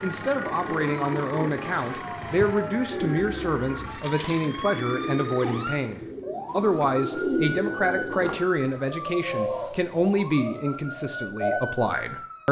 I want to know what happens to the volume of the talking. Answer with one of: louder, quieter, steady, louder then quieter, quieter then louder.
steady.